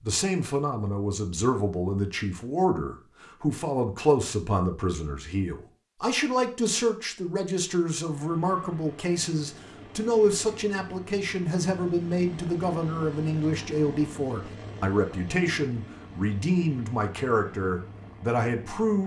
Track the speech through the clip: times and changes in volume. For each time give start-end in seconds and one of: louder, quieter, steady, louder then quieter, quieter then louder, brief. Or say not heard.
0.0-19.0 steady.